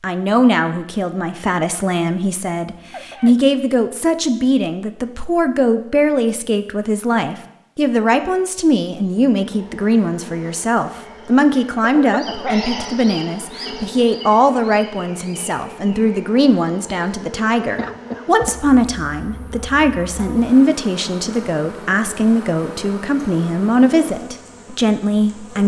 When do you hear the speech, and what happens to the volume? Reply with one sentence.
You can hear the speech from 0.0 to 25.6 s, at a steady volume.